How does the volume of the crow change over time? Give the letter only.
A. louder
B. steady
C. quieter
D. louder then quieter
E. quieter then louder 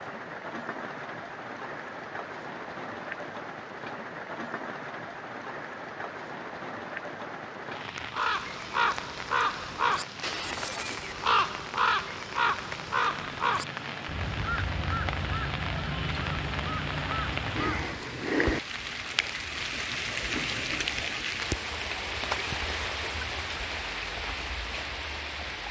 C.